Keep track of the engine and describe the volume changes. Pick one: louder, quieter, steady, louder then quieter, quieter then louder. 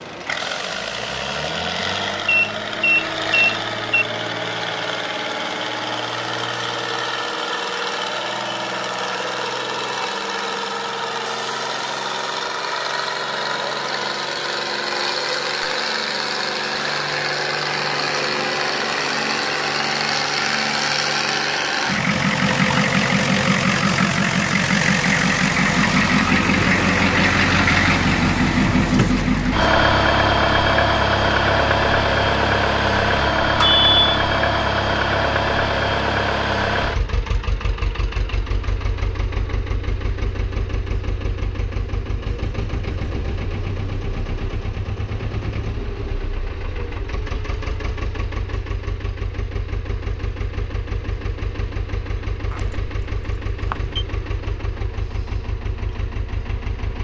louder then quieter.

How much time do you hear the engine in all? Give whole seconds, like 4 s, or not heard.
57 s.